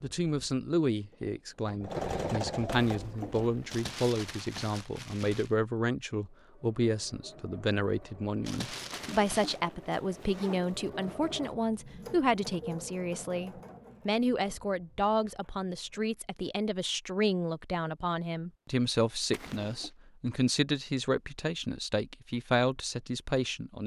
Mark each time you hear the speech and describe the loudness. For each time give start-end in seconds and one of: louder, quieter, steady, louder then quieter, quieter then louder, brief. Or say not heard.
0.0-23.8 steady.